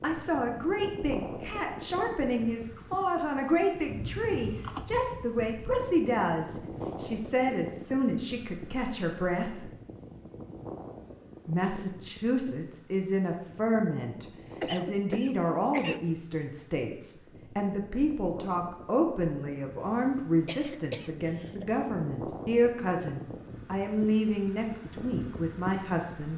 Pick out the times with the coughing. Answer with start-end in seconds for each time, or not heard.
4.0-5.1, 14.6-16.0, 19.8-21.6.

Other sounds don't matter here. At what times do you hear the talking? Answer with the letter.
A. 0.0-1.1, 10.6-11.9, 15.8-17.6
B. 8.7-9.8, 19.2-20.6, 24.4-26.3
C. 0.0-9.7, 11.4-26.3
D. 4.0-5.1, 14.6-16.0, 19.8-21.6
C.